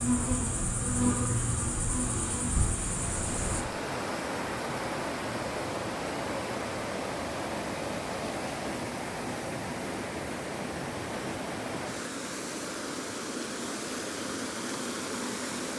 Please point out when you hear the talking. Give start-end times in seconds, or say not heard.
not heard.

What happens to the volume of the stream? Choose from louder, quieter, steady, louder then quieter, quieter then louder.
steady.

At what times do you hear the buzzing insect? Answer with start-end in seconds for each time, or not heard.
0.0-3.6.